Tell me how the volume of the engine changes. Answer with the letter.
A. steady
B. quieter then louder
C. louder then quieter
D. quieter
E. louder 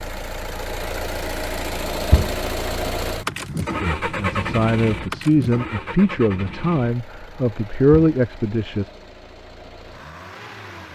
D.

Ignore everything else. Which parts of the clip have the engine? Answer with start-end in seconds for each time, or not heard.
0.0-10.9.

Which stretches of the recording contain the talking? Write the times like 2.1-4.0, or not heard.
3.8-8.9.